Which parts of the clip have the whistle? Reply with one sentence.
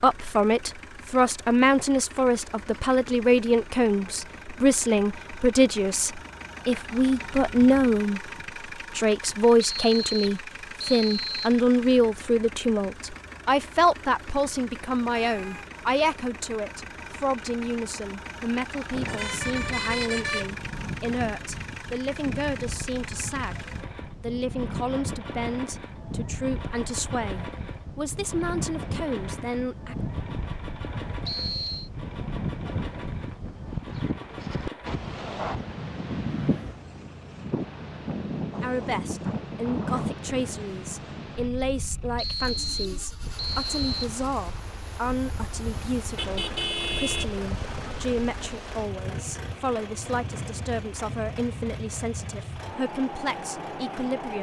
You can hear the whistle from 9.6 to 11.6 s, from 31.2 to 31.9 s and from 42.1 to 44.1 s.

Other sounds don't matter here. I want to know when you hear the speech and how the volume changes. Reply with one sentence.
The speech can be heard from 0.0 to 8.2 s, at a steady volume; from 8.9 to 29.9 s, getting quieter; and from 38.6 to 54.3 s, at a steady volume.